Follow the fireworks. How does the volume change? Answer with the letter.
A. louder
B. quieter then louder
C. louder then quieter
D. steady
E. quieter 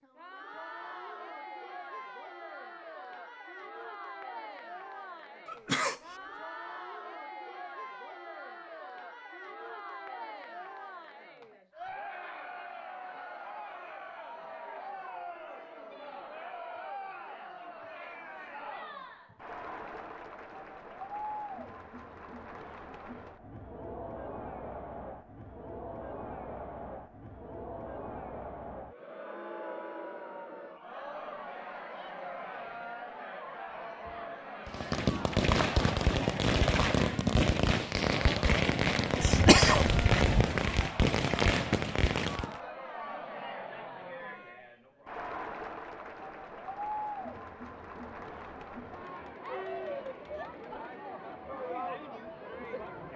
D.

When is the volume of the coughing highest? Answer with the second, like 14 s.
40 s.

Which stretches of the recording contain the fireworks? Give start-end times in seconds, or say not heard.
34.6-42.5.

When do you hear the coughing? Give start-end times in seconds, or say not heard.
5.5-6.2, 39.2-40.6.